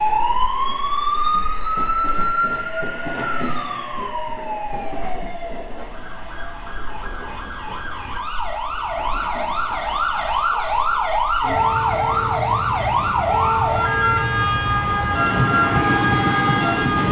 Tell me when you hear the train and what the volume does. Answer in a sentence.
You can hear the train from 0.0 to 17.0 s, getting quieter then louder.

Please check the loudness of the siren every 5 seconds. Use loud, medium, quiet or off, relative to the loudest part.
loud, medium, loud, loud.